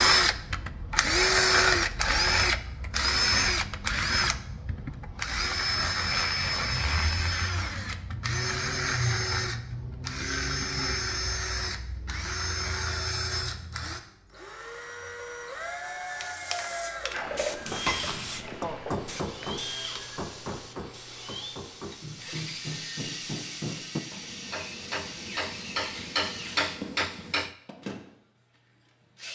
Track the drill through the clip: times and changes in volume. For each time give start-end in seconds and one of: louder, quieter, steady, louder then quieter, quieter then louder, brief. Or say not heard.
0.0-29.3 quieter.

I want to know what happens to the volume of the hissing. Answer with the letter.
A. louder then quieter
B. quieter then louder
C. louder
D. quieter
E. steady
D.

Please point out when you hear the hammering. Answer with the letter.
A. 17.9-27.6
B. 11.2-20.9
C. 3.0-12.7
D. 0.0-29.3
A.